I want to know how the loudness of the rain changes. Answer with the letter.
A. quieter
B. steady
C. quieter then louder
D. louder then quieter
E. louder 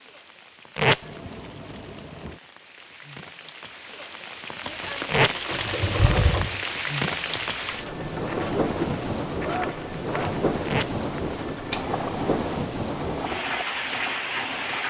E.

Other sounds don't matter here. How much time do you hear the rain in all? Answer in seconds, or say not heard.
15 s.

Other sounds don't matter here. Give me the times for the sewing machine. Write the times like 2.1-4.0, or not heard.
4.8-14.8.